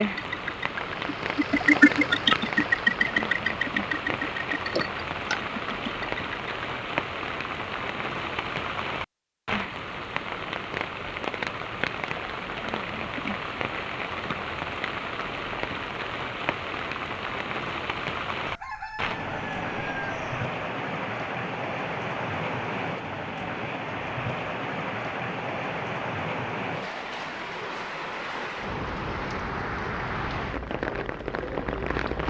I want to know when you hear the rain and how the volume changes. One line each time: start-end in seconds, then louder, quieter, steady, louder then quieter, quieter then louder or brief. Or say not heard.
0.0-32.2 steady.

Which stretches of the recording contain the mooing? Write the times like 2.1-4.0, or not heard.
not heard.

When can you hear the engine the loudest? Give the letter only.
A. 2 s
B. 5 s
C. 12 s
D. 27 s
A.